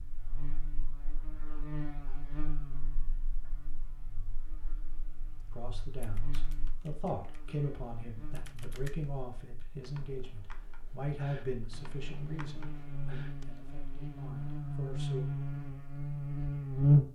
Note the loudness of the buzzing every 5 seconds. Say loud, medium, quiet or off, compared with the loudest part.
quiet, quiet, quiet, loud.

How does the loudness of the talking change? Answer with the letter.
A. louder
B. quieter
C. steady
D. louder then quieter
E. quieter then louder
B.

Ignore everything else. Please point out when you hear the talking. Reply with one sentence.
You can hear the talking from 5.5 to 15.2 s.